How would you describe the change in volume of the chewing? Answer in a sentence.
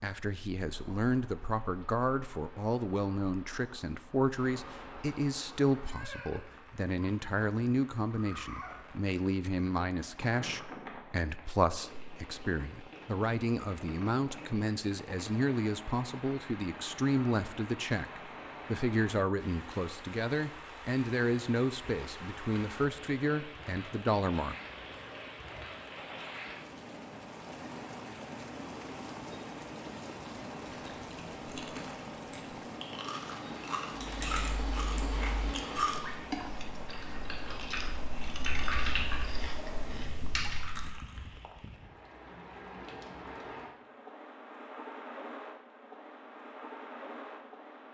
The volume of the chewing goes up, then down.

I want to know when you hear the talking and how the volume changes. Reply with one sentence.
The talking can be heard from 0.0 to 24.6 s, at a steady volume.